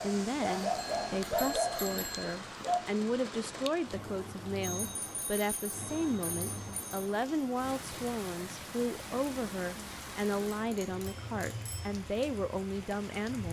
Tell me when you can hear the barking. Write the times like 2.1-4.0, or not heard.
0.0-2.8.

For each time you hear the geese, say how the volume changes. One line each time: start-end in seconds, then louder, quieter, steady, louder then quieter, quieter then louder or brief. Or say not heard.
not heard.